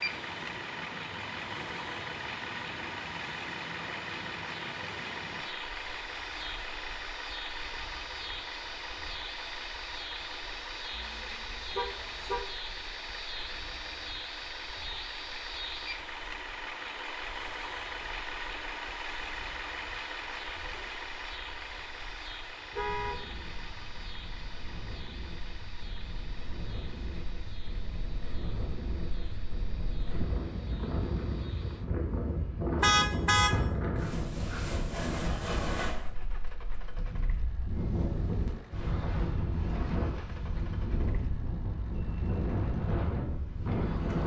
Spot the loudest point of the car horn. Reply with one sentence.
The volume of the car horn peaks at 33 seconds.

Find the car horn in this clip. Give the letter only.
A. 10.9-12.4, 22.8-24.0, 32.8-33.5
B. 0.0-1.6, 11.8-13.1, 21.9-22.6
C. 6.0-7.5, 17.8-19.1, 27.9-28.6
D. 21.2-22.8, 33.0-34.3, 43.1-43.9
A.